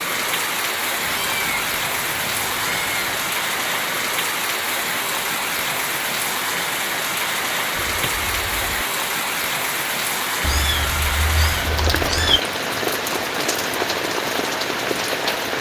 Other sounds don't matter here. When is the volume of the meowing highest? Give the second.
12 s.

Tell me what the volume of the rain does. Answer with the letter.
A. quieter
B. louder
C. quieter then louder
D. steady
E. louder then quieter
D.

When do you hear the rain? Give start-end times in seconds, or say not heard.
0.0-15.5.